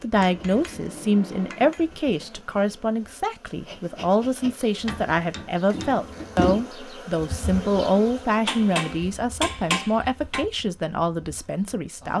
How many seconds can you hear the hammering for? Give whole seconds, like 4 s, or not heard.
5 s.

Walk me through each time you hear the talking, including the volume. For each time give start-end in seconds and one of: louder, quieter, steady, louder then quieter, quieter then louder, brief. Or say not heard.
0.0-12.1 steady.